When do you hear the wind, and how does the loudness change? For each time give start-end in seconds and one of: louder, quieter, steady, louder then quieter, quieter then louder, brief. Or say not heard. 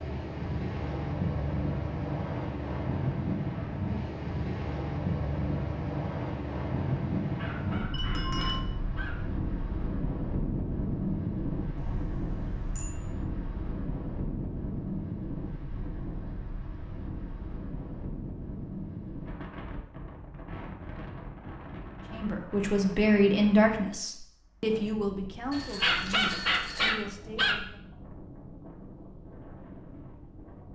0.0-30.7 quieter.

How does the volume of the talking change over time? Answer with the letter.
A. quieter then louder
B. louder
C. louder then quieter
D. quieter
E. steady
D.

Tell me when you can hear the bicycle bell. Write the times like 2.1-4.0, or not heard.
7.9-8.6, 11.8-12.9, 25.5-26.9.